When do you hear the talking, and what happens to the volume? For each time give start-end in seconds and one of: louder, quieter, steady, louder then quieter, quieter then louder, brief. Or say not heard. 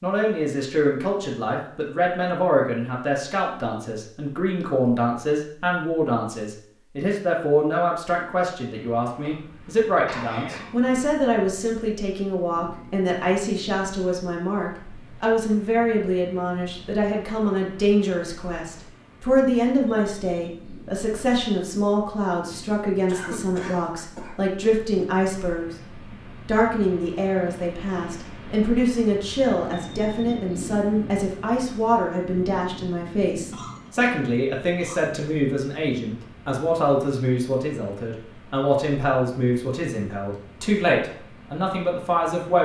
0.0-25.8 steady
26.4-42.5 steady.